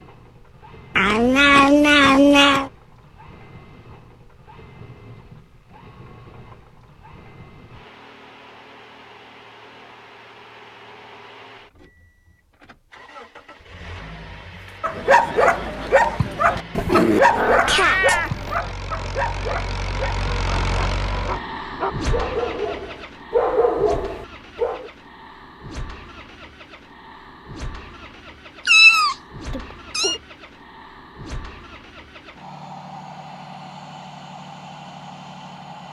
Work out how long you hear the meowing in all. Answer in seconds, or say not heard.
5 s.